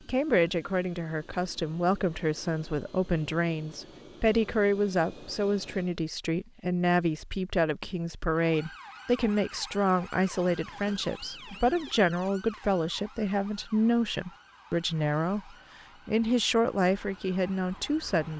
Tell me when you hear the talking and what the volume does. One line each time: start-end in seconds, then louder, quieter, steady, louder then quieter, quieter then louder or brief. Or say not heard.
0.1-18.3 steady.